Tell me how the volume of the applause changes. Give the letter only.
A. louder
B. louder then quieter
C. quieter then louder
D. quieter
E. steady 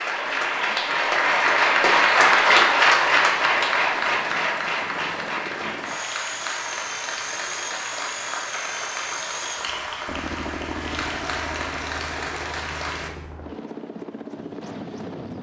D.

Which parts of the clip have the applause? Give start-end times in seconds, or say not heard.
0.0-13.1.